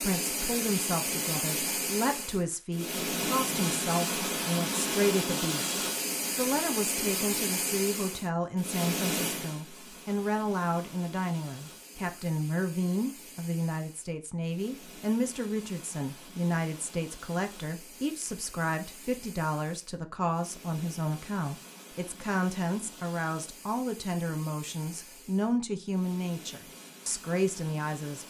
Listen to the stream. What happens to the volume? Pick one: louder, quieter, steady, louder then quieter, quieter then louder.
quieter.